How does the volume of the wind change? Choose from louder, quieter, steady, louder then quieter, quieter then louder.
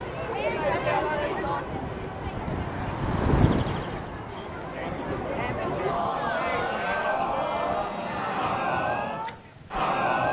louder then quieter.